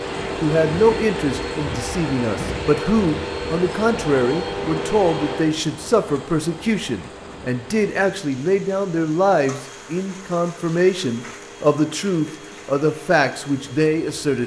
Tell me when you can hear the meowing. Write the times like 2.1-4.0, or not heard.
not heard.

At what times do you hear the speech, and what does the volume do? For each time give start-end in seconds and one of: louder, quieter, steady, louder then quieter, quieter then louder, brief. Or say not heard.
0.4-14.4 steady.